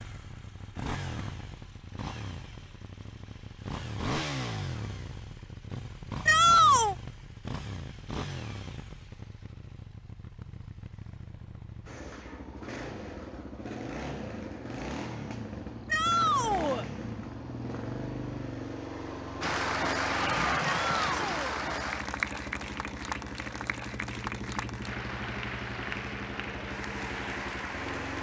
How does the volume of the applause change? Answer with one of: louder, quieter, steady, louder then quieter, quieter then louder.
quieter.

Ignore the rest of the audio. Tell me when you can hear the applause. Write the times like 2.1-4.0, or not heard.
19.4-28.1.